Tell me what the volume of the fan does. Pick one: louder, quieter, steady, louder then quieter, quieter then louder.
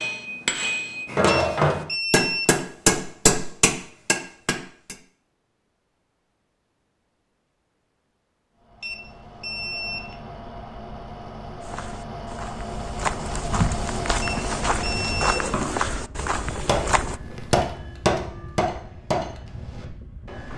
louder then quieter.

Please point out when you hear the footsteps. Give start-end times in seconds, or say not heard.
11.6-17.2.